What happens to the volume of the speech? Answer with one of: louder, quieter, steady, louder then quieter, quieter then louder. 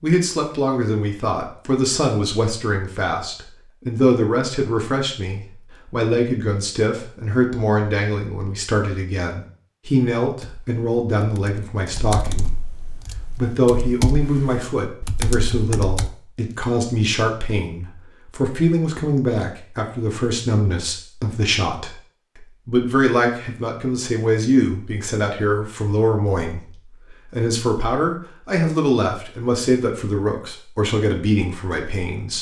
steady.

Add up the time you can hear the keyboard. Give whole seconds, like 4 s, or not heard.
6 s.